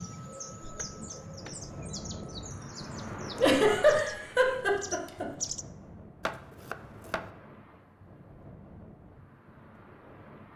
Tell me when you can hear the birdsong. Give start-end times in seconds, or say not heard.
0.0-5.7.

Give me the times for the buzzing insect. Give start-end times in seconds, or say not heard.
not heard.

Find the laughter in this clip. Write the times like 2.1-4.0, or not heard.
3.4-5.2.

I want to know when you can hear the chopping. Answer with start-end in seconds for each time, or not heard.
0.6-1.6, 6.2-7.3.